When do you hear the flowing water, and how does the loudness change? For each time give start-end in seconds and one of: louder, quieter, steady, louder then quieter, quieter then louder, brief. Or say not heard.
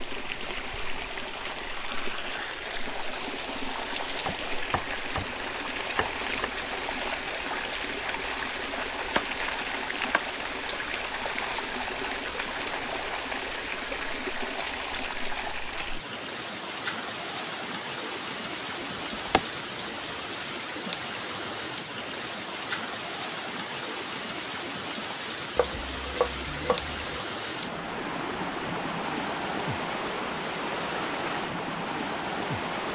0.0-32.9 steady.